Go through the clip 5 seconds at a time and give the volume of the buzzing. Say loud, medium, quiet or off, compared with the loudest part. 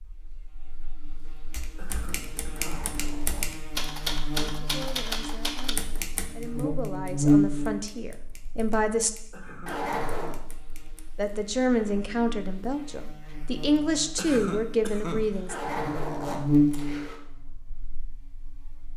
quiet, loud, quiet, loud.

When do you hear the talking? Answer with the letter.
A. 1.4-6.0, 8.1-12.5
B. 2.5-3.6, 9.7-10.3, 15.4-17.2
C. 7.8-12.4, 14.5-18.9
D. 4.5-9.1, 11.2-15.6
D.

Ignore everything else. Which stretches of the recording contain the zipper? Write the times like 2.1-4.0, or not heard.
2.5-3.6, 9.7-10.3, 15.4-17.2.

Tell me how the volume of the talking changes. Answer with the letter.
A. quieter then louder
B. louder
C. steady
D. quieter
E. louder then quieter
B.